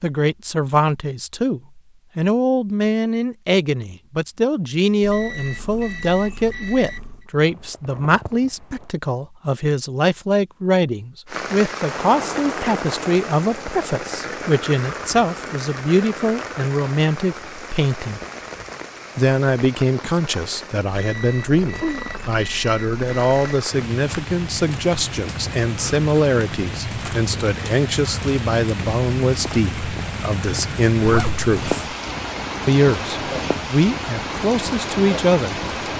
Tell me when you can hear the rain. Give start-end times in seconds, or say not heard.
11.2-35.9.